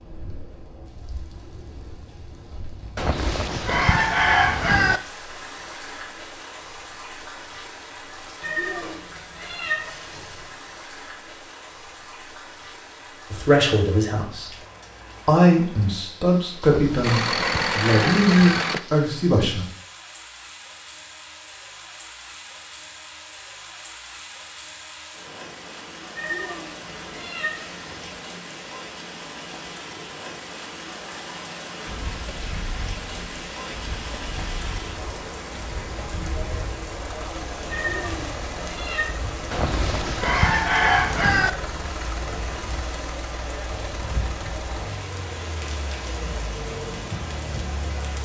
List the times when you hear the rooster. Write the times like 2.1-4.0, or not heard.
3.0-5.0, 16.6-18.6, 39.5-41.5.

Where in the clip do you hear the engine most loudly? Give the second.
18 s.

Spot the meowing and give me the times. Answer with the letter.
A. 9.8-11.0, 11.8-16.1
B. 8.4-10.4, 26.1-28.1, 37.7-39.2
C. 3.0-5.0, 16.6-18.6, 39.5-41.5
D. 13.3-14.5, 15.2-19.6
B.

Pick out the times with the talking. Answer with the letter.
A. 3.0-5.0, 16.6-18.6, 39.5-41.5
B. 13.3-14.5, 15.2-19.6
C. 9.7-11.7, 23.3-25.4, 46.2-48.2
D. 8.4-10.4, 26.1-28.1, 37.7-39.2
B.